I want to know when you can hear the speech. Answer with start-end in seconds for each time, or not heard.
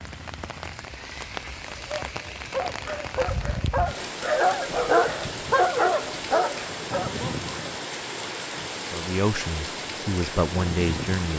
8.8-11.3.